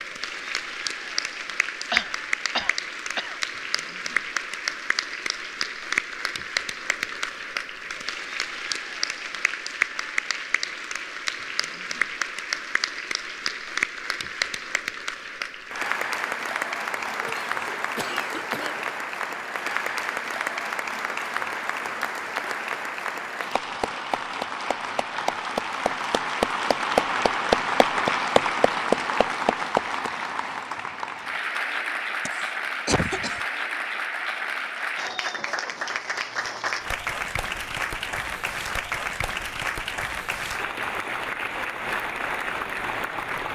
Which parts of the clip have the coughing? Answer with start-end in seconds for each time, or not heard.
1.9-3.4, 17.1-18.9, 32.2-33.4.